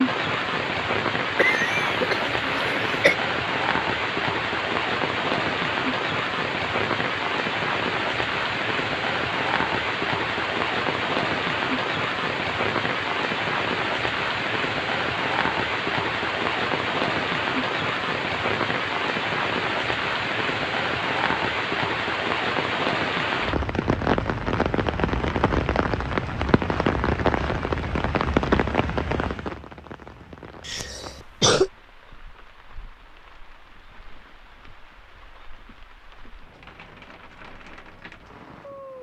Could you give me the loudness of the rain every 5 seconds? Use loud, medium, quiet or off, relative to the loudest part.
loud, loud, loud, loud, loud, loud, quiet, quiet.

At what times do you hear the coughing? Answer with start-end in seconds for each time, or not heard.
1.4-3.1, 30.6-31.7.